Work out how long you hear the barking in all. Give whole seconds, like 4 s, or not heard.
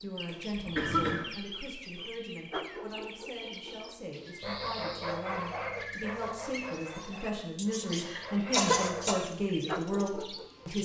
9 s.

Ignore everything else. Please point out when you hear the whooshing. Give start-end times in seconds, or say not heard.
0.5-1.4.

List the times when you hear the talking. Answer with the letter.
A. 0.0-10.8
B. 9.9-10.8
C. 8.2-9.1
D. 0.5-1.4
A.